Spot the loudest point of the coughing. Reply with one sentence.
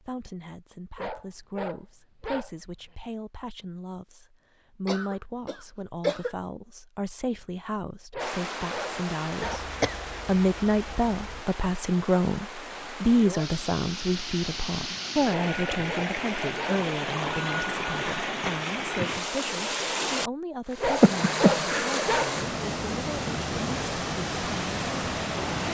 The loudest moment of the coughing is at 21 seconds.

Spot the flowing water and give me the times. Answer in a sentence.
You can hear the flowing water from 8.2 to 25.6 s.